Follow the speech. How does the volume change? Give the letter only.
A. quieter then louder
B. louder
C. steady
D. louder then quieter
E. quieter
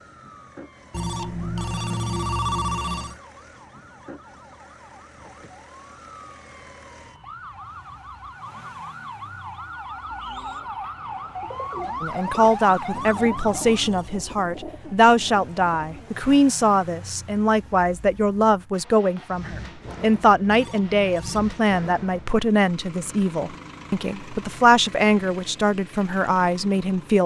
C.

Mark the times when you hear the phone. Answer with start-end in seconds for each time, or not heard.
0.9-3.2, 12.9-14.2, 20.4-21.4.